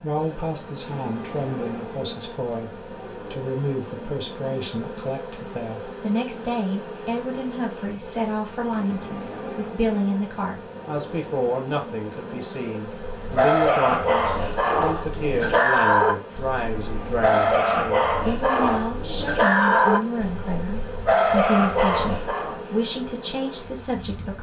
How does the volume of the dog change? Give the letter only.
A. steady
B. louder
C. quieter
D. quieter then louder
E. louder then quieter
A.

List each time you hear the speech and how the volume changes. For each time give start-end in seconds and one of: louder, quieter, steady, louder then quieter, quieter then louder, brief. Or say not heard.
0.0-2.7 brief
3.3-24.3 steady.